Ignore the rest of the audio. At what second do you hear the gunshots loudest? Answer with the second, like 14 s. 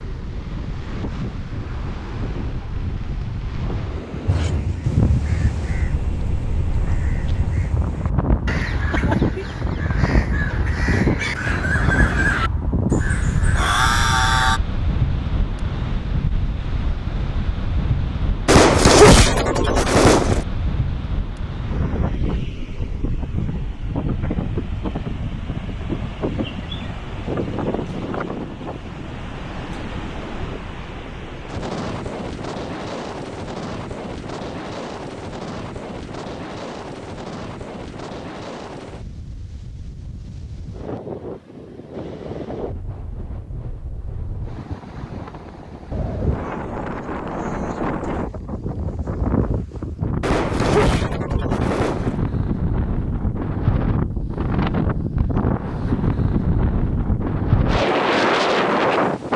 19 s.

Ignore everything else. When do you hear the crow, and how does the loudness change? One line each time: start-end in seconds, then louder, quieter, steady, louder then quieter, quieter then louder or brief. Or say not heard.
4.2-14.6 louder.